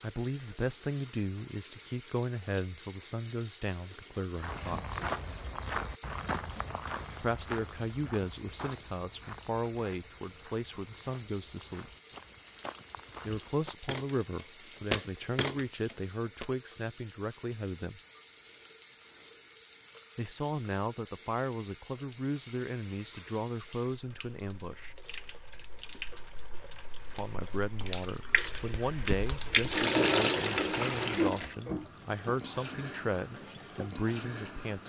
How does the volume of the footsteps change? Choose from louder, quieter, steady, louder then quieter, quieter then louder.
quieter then louder.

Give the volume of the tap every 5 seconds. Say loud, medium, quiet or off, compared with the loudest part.
quiet, quiet, quiet, quiet, quiet, loud, loud.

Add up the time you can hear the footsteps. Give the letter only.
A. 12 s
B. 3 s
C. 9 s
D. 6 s
A.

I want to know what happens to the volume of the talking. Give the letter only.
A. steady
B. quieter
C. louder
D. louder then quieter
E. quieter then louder
A.